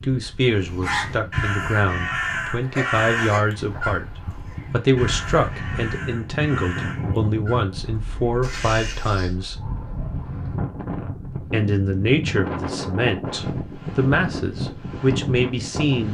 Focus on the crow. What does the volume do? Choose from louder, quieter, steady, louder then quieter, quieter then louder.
quieter.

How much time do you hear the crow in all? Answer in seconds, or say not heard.
9 s.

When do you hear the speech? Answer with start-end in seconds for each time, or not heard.
0.0-9.6, 11.3-16.0.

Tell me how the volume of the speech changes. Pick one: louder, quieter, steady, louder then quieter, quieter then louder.
steady.